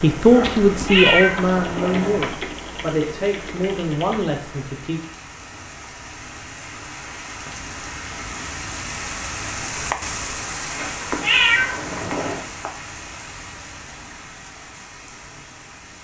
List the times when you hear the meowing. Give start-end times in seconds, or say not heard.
0.7-2.3, 10.8-12.4.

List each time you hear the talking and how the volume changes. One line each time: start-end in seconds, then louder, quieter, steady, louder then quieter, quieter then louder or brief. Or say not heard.
0.0-5.0 quieter.